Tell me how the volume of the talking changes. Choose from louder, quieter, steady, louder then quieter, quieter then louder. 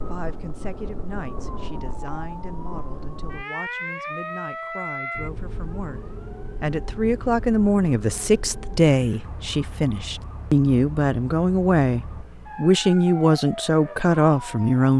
louder.